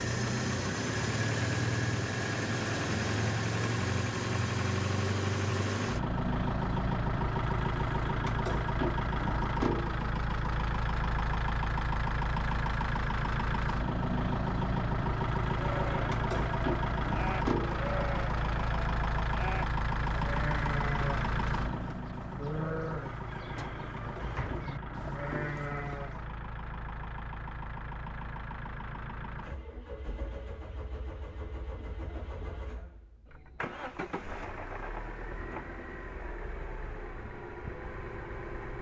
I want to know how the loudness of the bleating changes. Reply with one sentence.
The loudness of the bleating stays about the same.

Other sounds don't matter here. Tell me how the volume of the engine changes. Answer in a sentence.
The loudness of the engine goes down.